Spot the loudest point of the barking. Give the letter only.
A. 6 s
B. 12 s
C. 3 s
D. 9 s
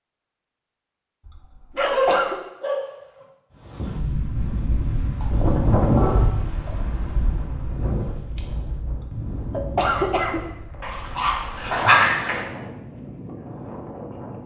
B.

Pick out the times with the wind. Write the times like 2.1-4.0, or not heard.
3.5-14.4.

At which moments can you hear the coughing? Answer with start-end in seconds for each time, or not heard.
1.2-2.4, 8.9-10.4.